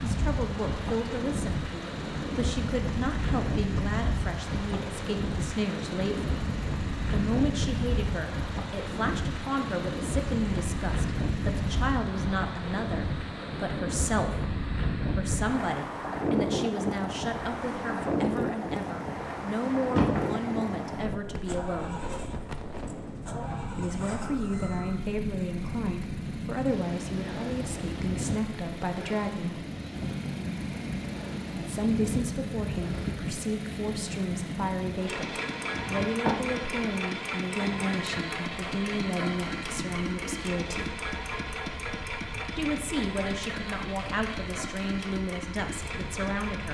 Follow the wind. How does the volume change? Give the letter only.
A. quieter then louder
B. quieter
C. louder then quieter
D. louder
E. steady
B.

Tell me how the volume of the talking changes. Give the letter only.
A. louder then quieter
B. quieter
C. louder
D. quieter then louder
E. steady
E.